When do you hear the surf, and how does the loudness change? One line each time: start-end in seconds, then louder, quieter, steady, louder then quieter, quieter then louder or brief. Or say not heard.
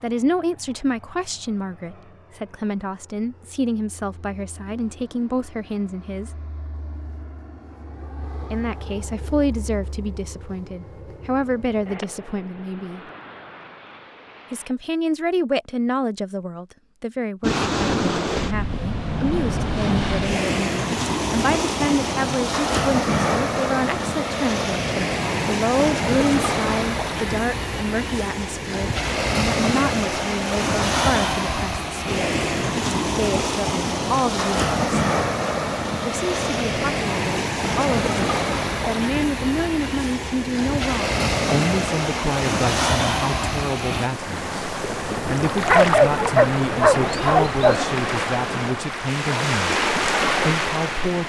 17.4-51.2 steady.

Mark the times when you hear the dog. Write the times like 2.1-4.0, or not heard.
45.6-47.9.